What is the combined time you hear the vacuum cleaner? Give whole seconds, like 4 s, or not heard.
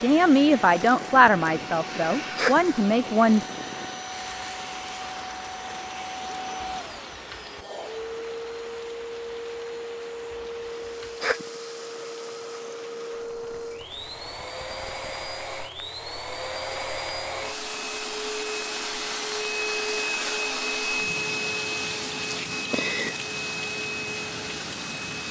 25 s.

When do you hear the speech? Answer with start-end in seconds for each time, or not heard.
0.0-3.5.